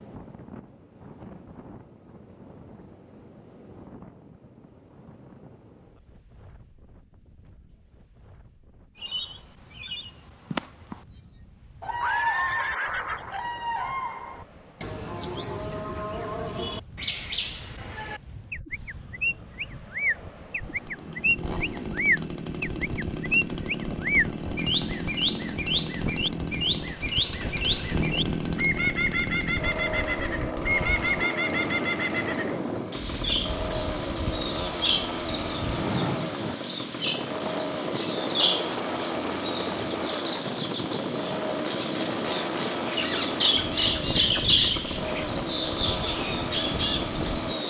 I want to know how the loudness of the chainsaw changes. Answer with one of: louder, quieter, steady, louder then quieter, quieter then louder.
steady.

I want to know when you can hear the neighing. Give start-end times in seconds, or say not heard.
12.0-13.4.